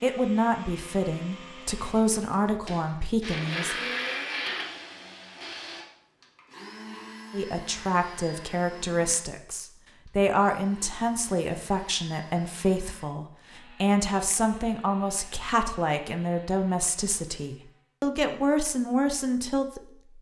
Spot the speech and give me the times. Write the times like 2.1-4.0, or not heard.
0.0-3.8, 7.3-20.1.